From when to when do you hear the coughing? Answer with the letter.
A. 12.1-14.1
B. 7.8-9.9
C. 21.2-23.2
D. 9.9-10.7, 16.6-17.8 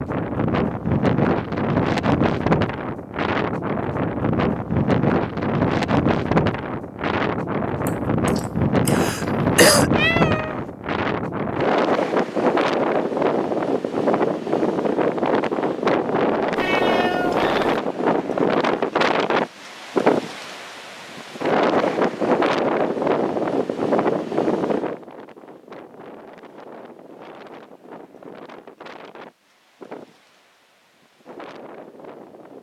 B.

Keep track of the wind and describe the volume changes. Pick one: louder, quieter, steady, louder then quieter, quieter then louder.
quieter.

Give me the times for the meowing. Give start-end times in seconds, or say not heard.
9.9-10.7, 16.6-17.8.